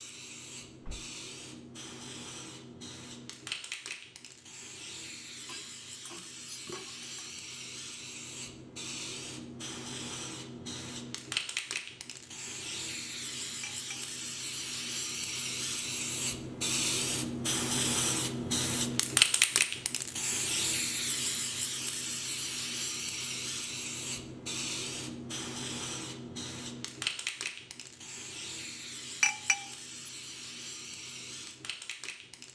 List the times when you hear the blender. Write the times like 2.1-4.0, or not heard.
not heard.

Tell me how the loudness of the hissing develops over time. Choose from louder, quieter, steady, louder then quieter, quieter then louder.
louder then quieter.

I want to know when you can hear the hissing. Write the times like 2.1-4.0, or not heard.
0.0-32.5.